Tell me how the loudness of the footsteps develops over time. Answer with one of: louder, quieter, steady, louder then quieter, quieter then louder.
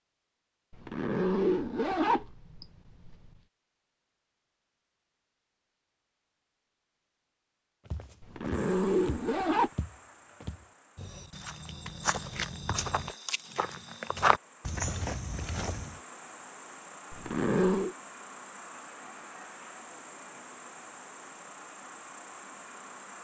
louder.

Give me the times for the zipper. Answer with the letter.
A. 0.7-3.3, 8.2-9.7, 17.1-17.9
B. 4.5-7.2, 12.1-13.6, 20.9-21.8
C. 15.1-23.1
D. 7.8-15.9
A.